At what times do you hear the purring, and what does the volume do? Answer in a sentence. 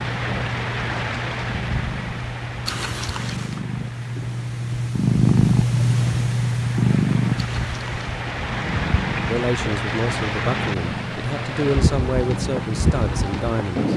The purring can be heard from 0.0 to 13.9 s, getting louder then quieter.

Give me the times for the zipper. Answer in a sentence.
The zipper can be heard from 2.6 to 3.6 s and from 7.3 to 8.1 s.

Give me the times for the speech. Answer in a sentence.
The speech can be heard from 9.2 to 13.9 s.